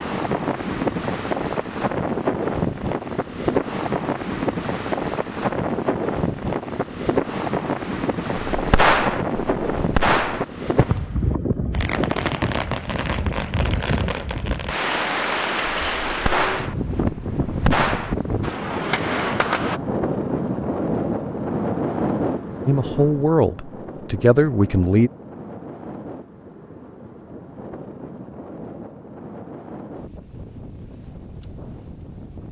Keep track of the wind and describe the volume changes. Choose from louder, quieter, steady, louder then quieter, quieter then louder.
quieter.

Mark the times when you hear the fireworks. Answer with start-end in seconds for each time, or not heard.
8.5-19.8.